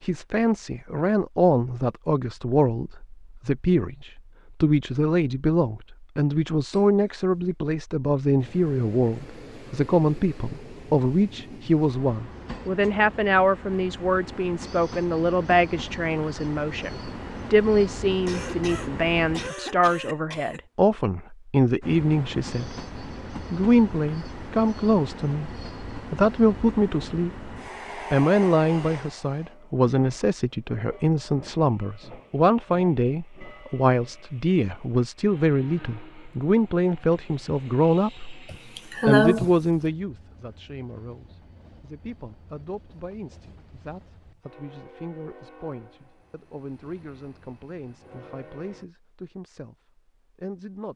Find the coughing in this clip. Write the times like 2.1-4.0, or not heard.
6.7-7.5, 18.2-20.6, 38.5-39.5.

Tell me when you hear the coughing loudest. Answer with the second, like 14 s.
39 s.